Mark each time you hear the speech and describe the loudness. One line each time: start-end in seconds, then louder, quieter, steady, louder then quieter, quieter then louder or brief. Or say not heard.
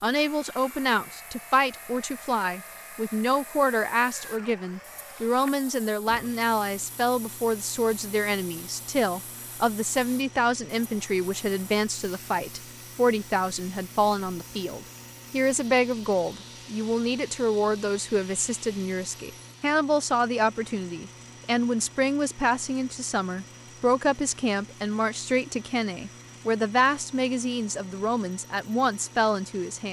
0.0-29.8 steady.